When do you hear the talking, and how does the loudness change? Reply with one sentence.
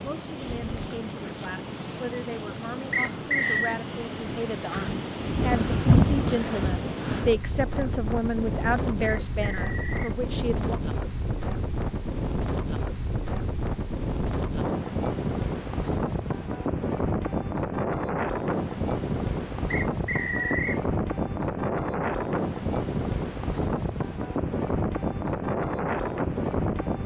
The talking can be heard from 0.0 to 10.8 s, getting louder.